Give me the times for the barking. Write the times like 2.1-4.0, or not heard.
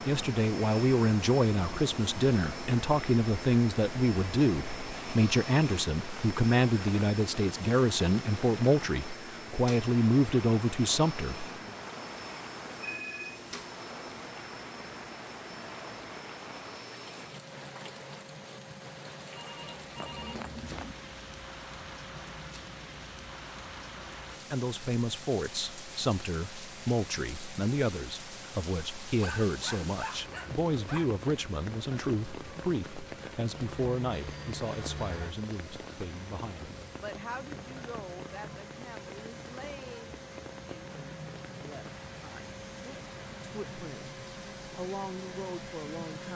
29.2-31.1.